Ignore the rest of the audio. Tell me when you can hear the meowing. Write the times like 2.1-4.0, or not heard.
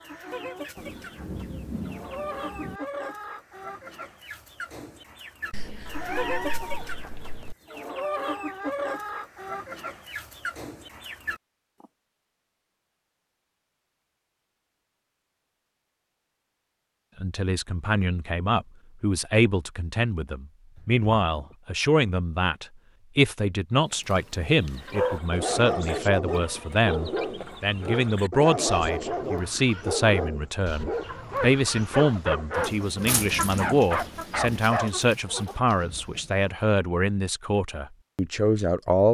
5.5-7.5, 20.8-21.6.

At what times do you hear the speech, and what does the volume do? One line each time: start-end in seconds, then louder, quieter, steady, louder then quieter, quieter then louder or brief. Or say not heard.
17.2-39.0 steady.